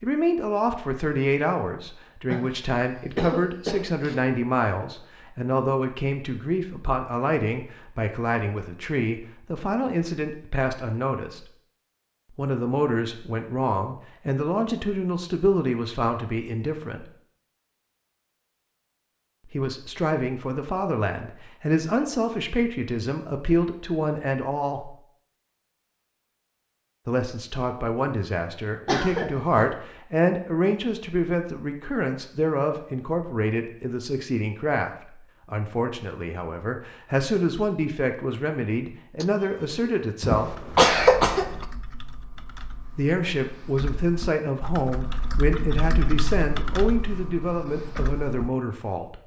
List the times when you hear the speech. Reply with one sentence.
The speech can be heard from 0.0 to 11.4 s, from 12.3 to 17.1 s, from 19.4 to 24.9 s, from 27.1 to 40.5 s and from 43.0 to 49.2 s.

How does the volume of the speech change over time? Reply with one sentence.
The volume of the speech stays about the same.